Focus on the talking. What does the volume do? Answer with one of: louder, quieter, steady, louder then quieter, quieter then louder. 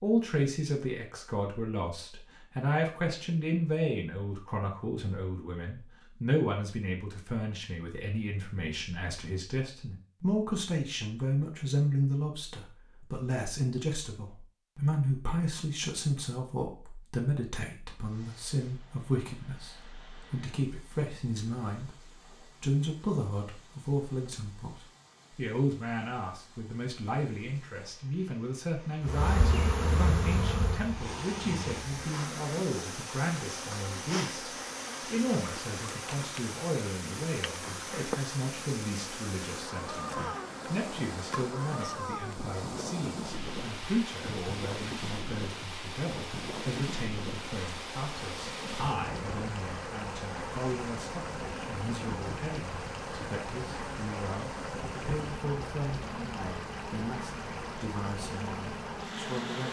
quieter.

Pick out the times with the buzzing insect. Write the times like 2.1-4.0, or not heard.
29.1-59.6.